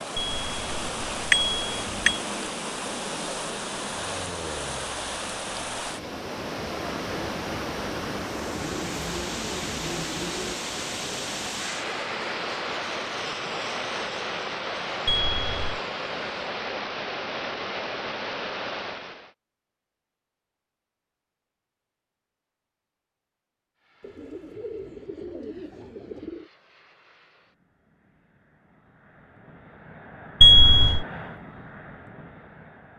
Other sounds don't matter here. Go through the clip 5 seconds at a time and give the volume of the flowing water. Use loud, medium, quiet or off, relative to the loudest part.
loud, loud, loud, loud, off, off, off.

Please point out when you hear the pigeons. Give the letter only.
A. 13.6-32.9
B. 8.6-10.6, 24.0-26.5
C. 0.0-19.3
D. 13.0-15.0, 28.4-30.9
B.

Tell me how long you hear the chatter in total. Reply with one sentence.
You can't hear the chatter here.